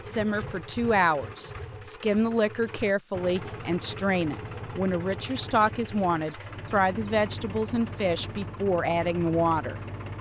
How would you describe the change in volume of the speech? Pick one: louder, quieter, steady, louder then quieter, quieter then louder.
steady.